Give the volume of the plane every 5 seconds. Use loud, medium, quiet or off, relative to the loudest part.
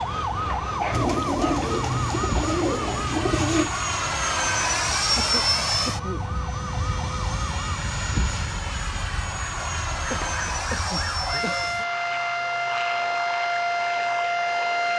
loud, loud, medium.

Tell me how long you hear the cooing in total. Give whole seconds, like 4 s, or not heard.
3 s.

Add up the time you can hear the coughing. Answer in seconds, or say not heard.
4 s.